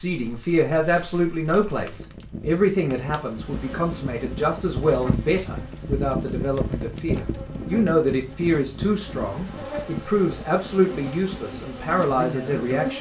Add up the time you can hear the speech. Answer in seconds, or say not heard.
13 s.